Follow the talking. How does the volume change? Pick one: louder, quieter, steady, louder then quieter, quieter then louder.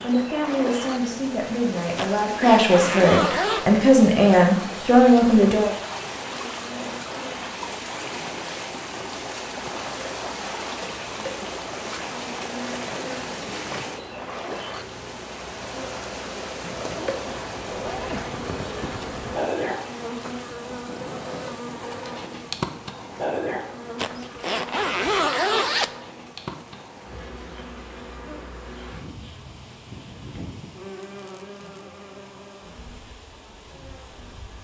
louder.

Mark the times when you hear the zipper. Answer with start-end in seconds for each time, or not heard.
1.9-3.7, 16.8-18.4, 23.9-26.0.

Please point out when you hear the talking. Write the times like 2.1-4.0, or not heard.
0.0-5.8.